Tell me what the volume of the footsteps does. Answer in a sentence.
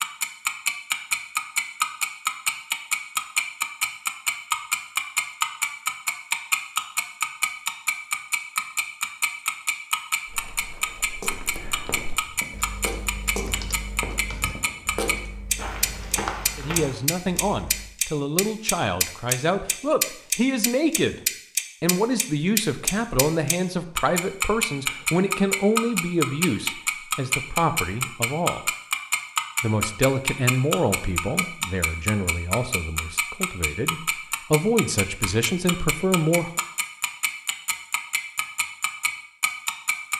The loudness of the footsteps goes up.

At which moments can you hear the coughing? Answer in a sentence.
You can't hear the coughing here.